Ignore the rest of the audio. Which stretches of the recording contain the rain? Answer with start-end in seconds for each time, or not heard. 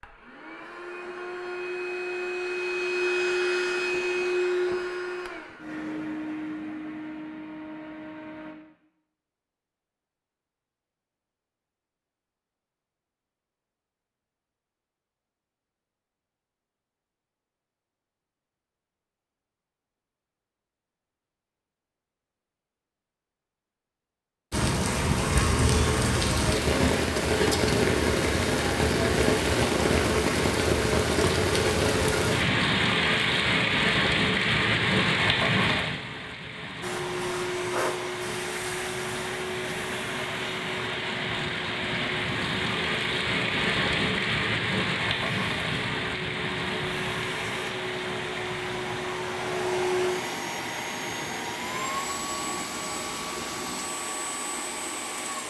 24.5-55.4.